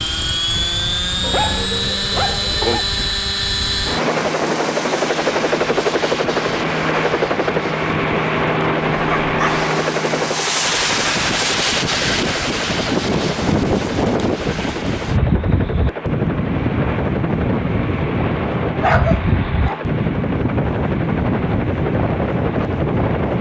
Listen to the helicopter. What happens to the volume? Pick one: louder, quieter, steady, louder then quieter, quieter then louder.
quieter.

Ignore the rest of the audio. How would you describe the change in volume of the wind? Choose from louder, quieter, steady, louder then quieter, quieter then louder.
louder.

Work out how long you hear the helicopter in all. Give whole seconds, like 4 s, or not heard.
23 s.